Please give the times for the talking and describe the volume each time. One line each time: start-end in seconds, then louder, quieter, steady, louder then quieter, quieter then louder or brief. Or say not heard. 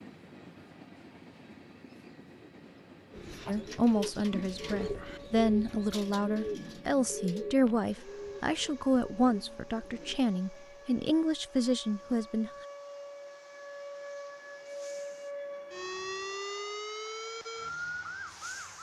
3.5-12.5 steady.